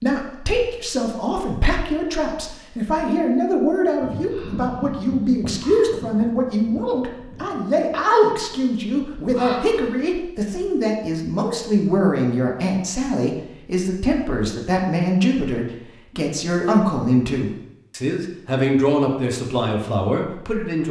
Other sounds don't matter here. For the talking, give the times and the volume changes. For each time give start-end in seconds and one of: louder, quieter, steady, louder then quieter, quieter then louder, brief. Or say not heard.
0.0-20.8 steady.